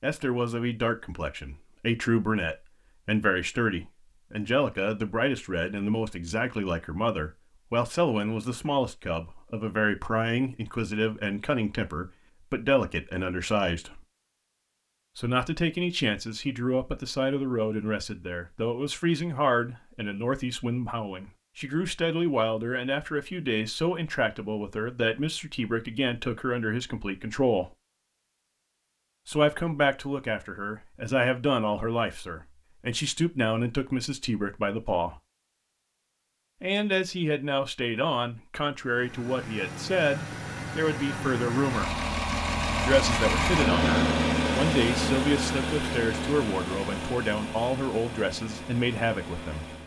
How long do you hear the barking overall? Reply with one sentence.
The barking can't be heard in this clip.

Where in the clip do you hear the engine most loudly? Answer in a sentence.
The loudest moment of the engine is at 44 seconds.